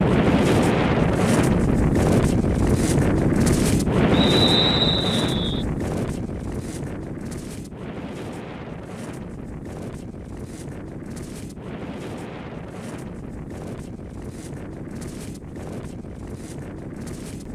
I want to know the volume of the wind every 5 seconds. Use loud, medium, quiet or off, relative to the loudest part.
loud, medium, quiet, quiet.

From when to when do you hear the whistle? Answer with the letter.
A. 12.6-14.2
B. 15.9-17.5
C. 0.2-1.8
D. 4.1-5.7
D.